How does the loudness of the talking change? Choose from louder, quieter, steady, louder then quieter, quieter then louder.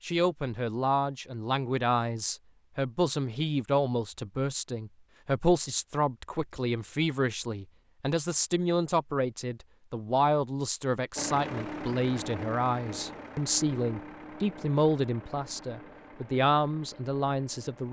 steady.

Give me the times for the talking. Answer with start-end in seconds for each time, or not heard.
0.0-17.8.